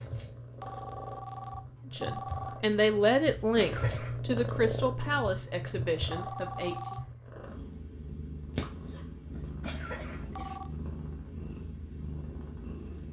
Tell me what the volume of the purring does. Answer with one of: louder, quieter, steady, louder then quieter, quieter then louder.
louder then quieter.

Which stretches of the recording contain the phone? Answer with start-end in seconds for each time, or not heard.
0.5-2.6, 6.0-7.0, 10.2-10.7.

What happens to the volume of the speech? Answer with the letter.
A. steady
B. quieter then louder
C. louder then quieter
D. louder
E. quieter
E.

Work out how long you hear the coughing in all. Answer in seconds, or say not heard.
2 s.